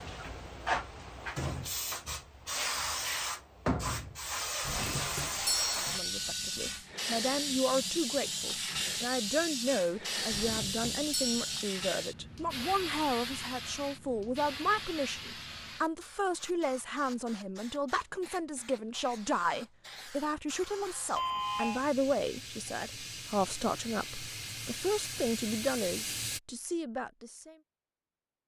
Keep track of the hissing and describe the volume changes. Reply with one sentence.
The volume of the hissing goes down, then up.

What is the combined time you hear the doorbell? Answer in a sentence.
The doorbell can be heard for 4 seconds in total.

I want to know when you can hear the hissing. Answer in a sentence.
The hissing can be heard from 0.0 to 26.4 s.